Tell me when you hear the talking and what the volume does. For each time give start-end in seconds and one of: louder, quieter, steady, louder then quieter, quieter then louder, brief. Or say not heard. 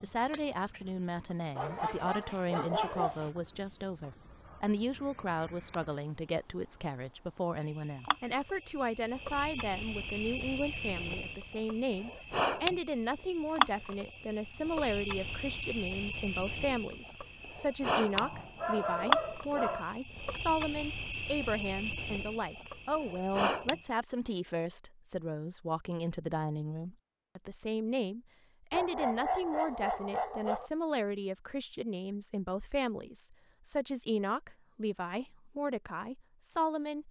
0.0-37.0 steady.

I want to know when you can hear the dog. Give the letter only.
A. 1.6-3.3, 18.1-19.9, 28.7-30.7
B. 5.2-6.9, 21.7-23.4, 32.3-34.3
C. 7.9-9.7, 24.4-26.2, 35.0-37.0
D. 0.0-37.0
A.